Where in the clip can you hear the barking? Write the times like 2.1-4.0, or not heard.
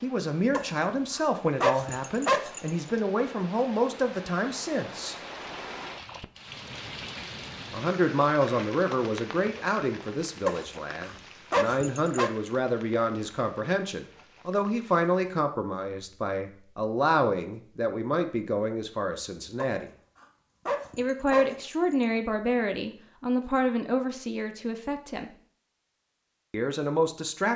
0.5-2.8, 10.4-12.3, 19.6-22.2.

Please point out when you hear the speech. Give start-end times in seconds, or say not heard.
0.0-5.2, 7.7-19.9, 20.9-25.3, 26.5-27.5.